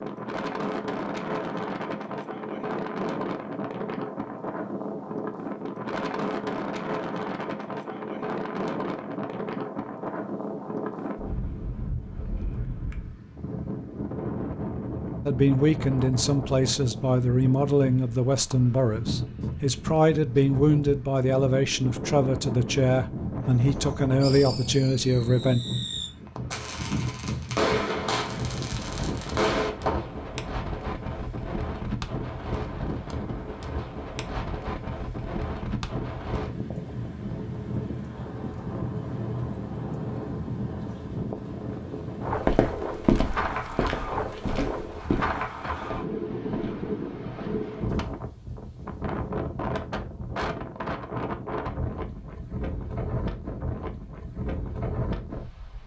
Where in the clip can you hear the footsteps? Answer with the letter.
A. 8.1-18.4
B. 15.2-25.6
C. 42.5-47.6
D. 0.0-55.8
C.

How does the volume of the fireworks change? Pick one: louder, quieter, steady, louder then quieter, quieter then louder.
louder.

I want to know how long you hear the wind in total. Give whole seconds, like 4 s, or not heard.
56 s.